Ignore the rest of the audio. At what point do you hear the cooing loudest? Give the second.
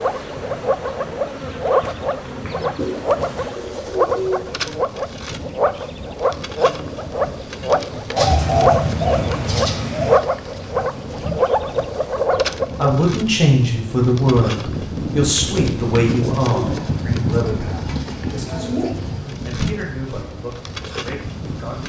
9 s.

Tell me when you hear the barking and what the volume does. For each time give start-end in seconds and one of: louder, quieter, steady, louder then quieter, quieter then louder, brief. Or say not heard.
not heard.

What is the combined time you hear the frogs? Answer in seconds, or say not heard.
13 s.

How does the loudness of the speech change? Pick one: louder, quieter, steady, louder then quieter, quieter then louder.
quieter.